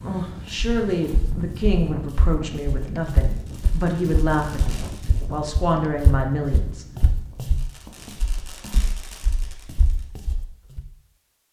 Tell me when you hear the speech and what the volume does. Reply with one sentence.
You can hear the speech from 0.1 to 6.8 s, at a steady volume.